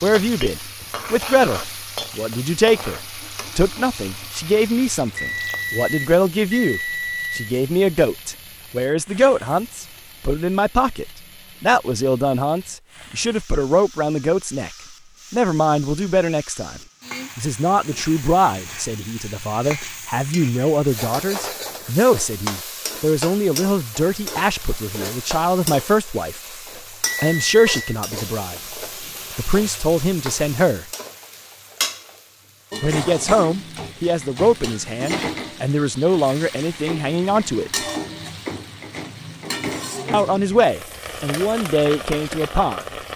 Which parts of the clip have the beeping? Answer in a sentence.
The beeping can be heard from 5.2 to 7.5 s and from 27.1 to 27.8 s.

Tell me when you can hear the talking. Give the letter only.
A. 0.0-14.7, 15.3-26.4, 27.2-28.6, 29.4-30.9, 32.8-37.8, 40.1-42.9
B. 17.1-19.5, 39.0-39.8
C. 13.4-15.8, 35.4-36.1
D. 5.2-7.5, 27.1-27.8
A.